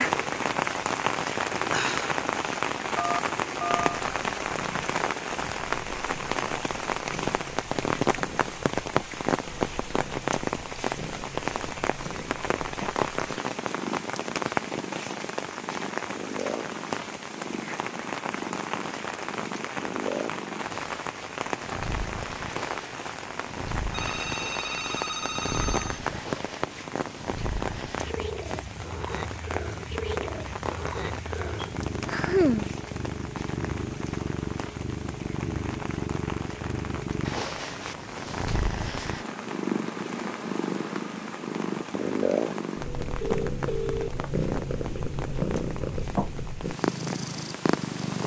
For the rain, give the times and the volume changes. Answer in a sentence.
The rain can be heard from 0.0 to 48.2 s, getting quieter.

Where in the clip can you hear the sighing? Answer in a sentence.
The sighing can be heard from 1.7 to 2.1 s and from 31.6 to 32.7 s.